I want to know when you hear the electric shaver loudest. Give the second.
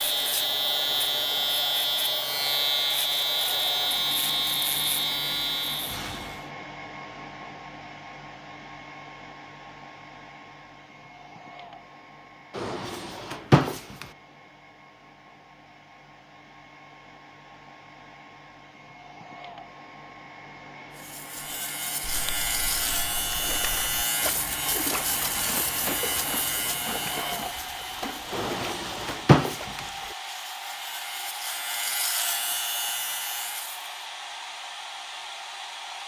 3 s.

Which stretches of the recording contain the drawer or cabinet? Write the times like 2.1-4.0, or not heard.
12.6-14.1, 28.3-29.8.